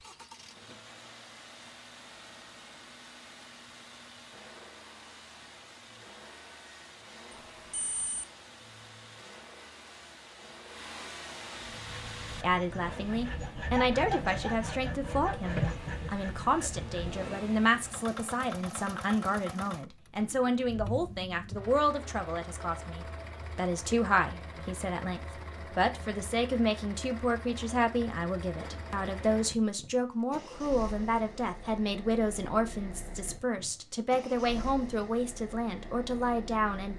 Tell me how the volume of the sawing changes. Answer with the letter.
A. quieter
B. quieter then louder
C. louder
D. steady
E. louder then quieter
E.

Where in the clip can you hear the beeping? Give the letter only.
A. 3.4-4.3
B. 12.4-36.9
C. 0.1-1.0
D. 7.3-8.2
D.